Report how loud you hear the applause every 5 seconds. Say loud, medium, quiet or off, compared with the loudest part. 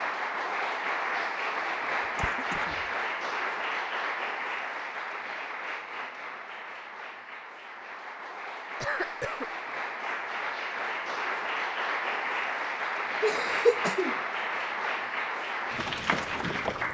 loud, medium, loud, loud.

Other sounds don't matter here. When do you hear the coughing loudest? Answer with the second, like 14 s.
14 s.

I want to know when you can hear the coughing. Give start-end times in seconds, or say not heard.
2.0-2.9, 8.8-9.5, 13.2-14.2.